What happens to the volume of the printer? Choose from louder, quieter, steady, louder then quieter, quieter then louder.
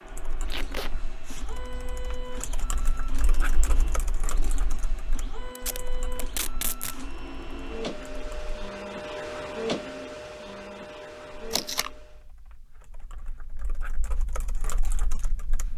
louder.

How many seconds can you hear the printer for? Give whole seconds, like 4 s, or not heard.
12 s.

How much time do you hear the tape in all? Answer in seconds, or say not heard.
2 s.